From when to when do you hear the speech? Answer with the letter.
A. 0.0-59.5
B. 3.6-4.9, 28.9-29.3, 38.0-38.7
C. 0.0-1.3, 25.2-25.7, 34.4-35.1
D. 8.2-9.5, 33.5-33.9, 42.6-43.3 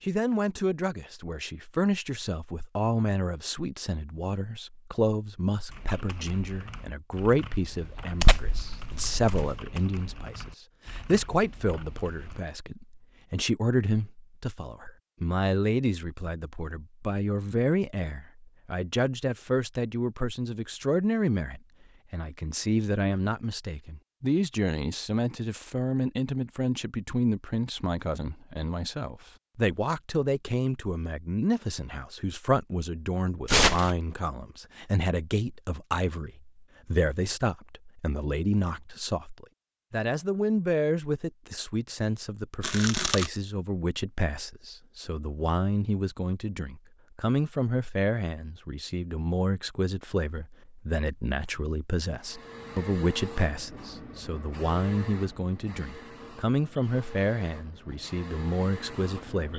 A.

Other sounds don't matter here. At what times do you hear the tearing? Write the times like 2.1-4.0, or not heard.
8.2-9.5, 33.5-33.9, 42.6-43.3.